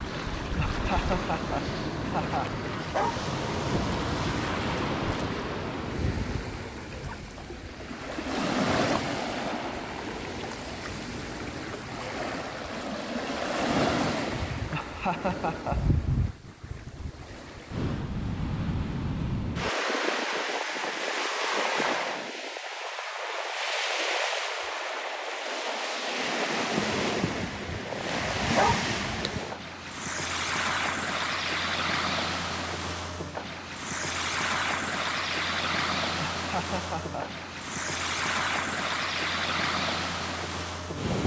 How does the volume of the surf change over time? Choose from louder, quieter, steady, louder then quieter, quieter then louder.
steady.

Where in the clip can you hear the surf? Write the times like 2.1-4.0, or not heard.
0.0-41.2.